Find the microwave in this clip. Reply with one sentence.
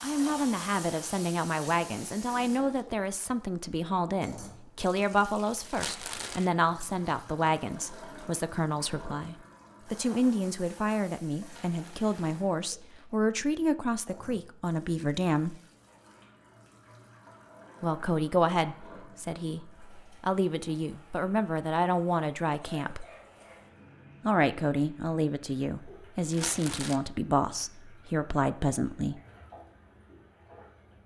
You can't hear the microwave here.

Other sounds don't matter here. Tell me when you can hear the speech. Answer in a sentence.
You can hear the speech from 0.0 to 15.6 s, from 17.8 to 23.1 s and from 24.2 to 29.2 s.